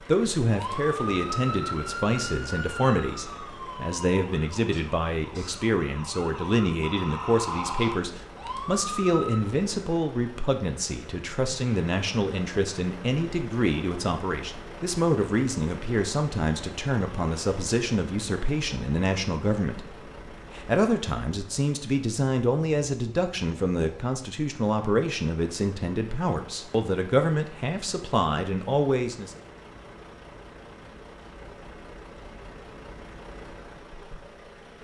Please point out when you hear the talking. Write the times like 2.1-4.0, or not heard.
0.1-29.4.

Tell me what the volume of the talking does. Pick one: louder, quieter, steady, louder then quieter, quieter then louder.
steady.